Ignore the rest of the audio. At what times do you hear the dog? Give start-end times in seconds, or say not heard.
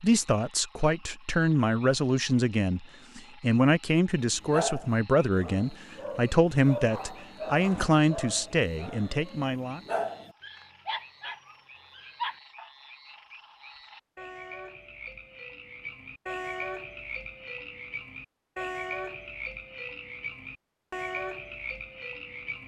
4.2-12.7.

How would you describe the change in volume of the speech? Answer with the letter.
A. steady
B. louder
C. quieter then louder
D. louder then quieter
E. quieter
A.